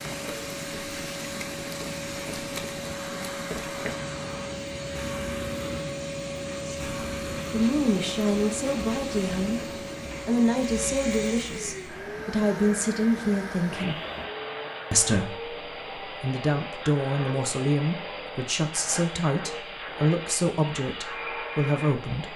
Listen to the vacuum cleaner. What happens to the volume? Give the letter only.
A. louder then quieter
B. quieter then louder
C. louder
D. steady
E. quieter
D.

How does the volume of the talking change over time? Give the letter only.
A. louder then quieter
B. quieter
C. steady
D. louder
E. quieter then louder
C.